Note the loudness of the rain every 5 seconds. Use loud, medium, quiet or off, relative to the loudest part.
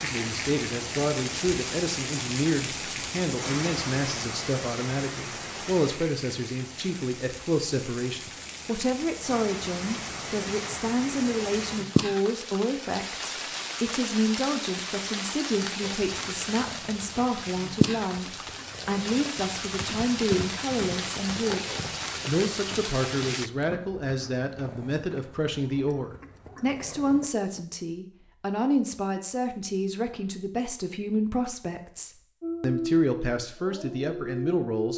loud, medium, loud, loud, loud, off, off.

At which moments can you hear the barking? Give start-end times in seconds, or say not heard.
32.4-34.9.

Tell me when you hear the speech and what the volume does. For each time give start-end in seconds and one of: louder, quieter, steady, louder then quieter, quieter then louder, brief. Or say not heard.
0.0-34.9 steady.